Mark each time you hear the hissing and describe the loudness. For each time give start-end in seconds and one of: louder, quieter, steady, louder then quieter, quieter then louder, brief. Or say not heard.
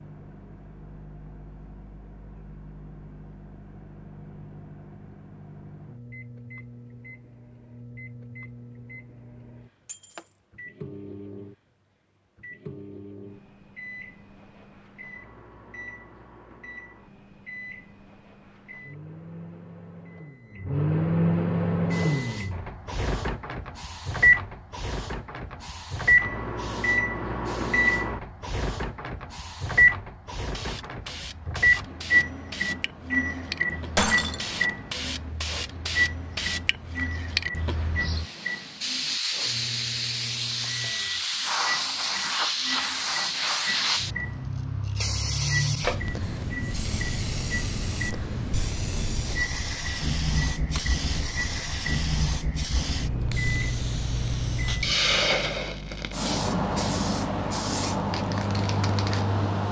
21.8-59.6 louder.